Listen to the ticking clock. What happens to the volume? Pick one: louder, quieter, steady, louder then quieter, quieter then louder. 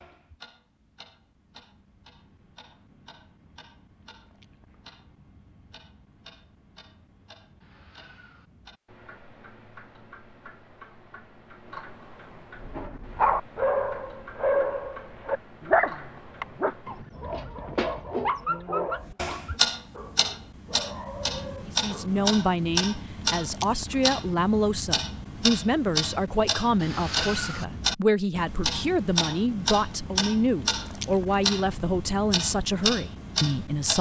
louder.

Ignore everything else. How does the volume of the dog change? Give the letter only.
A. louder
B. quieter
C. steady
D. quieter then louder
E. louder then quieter
B.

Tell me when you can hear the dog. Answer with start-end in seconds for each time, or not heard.
12.6-22.2.